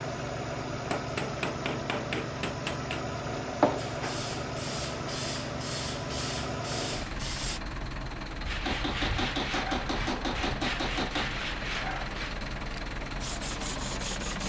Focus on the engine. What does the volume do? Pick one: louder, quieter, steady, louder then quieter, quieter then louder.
steady.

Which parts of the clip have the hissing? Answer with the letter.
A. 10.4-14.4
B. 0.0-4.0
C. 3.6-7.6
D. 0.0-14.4
C.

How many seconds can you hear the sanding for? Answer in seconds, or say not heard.
6 s.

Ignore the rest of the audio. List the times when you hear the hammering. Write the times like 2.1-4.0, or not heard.
0.9-3.0, 8.7-11.3.